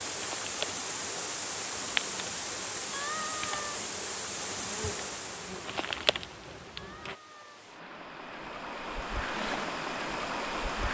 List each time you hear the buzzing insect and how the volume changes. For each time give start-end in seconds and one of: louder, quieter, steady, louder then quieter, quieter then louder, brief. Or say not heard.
0.0-7.2 quieter then louder.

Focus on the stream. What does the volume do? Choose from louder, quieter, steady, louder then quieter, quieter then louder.
quieter then louder.